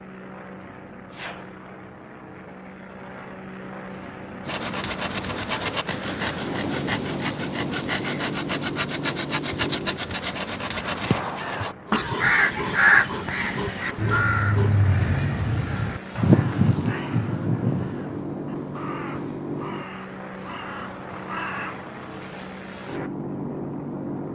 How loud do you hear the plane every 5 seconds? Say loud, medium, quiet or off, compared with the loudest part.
medium, loud, medium, loud, loud.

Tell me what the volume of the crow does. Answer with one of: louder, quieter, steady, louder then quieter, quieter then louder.
quieter.